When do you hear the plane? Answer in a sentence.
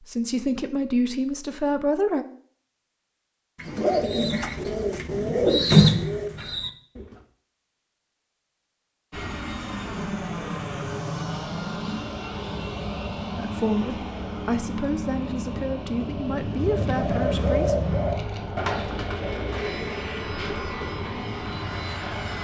You can hear the plane from 9.1 to 22.3 s.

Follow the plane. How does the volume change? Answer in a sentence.
The volume of the plane stays about the same.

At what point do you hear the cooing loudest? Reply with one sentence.
The loudest moment of the cooing is at 6 seconds.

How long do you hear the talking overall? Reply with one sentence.
You can hear the talking for 7 seconds altogether.